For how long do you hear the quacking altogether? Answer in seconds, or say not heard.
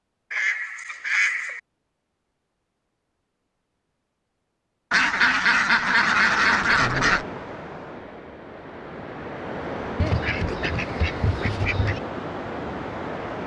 6 s.